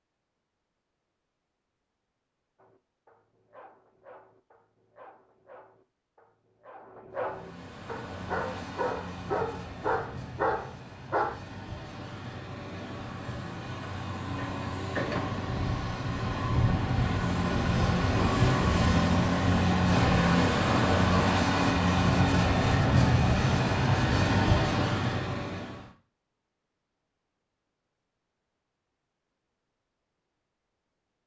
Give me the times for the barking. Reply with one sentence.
You can hear the barking from 2.5 to 11.3 s.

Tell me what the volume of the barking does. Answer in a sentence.
The loudness of the barking goes up.